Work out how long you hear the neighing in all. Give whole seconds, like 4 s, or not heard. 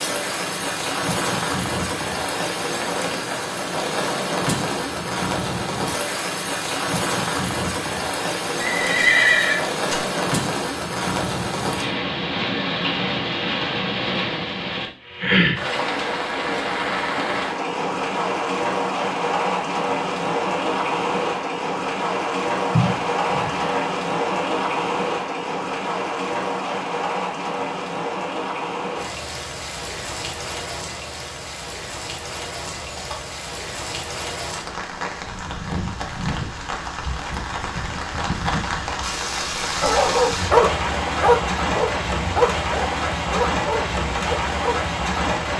3 s.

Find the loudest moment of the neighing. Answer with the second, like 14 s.
9 s.